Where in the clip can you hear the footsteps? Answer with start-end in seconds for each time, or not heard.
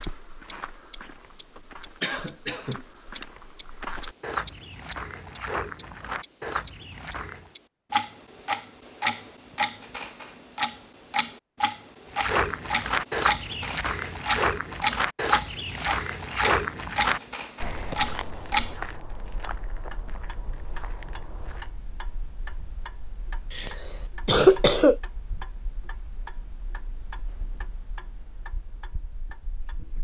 0.0-7.5, 12.1-21.8.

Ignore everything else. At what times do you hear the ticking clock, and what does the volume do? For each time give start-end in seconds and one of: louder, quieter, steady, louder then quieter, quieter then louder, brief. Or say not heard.
0.0-29.9 quieter.